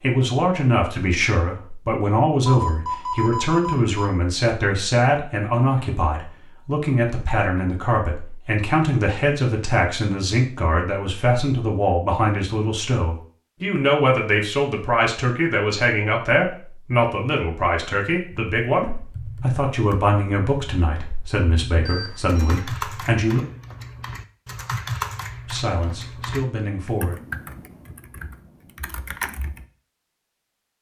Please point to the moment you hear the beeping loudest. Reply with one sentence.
The loudest moment of the beeping is at 3 seconds.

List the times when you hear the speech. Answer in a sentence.
You can hear the speech from 0.0 to 23.4 s and from 25.4 to 27.2 s.